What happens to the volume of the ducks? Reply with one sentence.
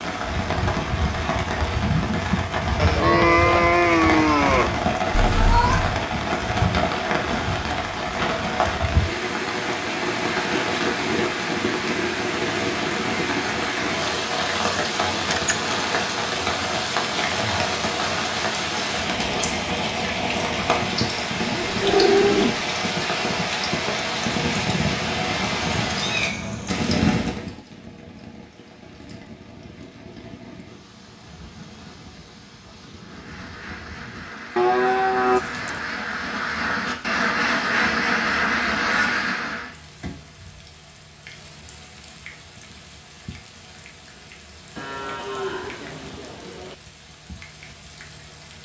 The loudness of the ducks goes up.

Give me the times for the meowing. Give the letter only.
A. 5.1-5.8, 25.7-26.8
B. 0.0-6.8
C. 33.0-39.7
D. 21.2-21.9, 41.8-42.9
A.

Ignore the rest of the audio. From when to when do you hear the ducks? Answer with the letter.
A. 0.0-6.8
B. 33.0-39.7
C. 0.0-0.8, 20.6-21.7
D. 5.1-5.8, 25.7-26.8
B.